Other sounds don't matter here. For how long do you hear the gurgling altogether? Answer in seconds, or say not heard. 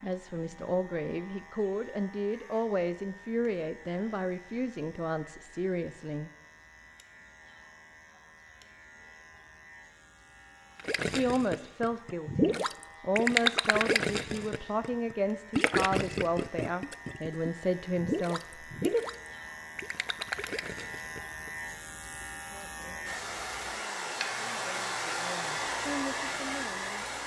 11 s.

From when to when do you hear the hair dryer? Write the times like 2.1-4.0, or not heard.
23.1-27.2.